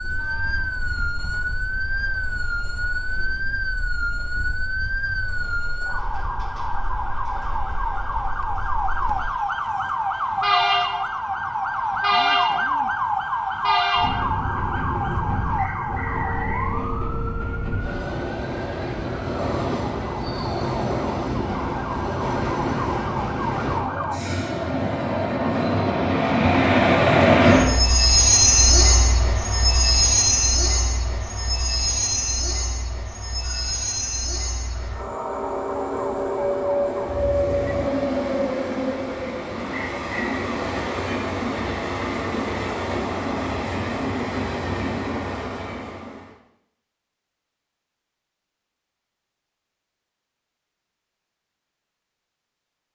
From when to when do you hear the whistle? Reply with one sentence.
The whistle can be heard from 15.6 to 16.7 s and from 39.7 to 40.4 s.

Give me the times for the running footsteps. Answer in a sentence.
The running footsteps can't be heard in this clip.